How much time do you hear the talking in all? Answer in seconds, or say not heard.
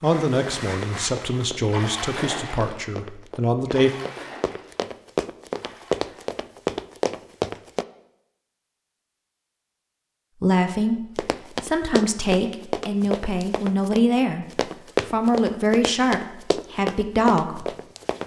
11 s.